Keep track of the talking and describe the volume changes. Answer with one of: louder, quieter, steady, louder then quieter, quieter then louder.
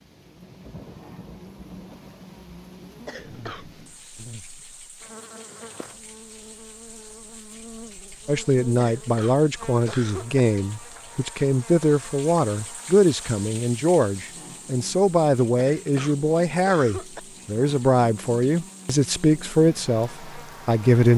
steady.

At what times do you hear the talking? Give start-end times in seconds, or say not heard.
8.2-21.1.